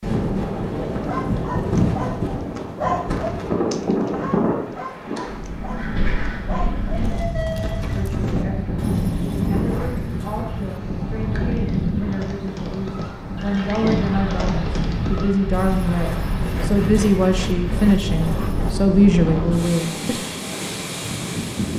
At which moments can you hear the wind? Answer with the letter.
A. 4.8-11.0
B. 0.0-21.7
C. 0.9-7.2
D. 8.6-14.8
B.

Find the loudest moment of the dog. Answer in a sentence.
The loudest moment of the dog is at 3 seconds.